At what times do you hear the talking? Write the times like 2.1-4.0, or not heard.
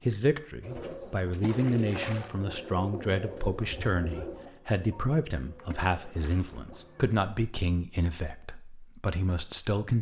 0.0-9.9.